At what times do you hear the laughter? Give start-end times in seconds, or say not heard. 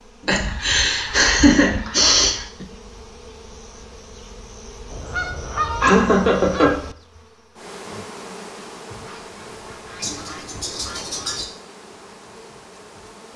0.2-2.6, 5.8-6.8, 10.0-11.4.